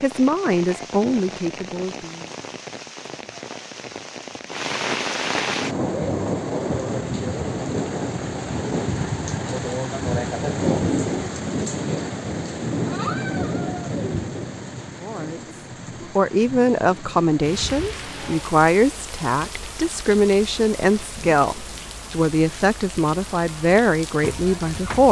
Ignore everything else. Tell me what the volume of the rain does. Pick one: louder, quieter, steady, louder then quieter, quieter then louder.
louder then quieter.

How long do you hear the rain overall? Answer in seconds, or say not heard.
25 s.